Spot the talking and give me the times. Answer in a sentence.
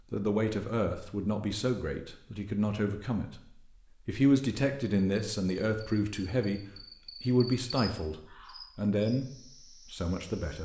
You can hear the talking from 0.1 to 9.2 s and from 9.8 to 10.6 s.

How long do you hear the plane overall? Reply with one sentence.
You can't hear the plane here.